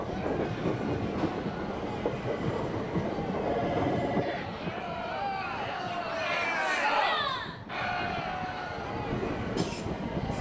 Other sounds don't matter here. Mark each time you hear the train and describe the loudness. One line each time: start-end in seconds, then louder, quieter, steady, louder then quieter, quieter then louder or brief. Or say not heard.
0.0-10.3 quieter then louder.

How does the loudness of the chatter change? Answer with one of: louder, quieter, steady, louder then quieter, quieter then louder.
louder then quieter.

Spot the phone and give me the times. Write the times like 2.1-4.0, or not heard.
3.4-4.8.